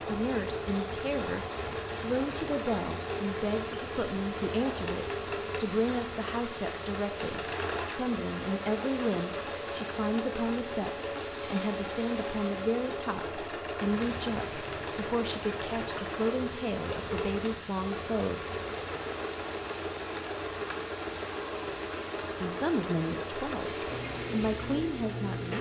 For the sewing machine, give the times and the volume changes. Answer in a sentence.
You can hear the sewing machine from 0.0 to 25.5 s, at a steady volume.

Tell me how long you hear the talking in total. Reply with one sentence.
The talking can be heard for 22 seconds in total.